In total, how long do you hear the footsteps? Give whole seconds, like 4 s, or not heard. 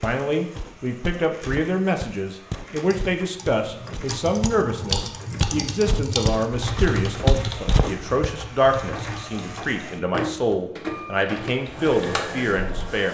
8 s.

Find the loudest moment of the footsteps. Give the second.
7 s.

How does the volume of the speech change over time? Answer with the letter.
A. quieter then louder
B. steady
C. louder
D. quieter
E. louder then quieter
B.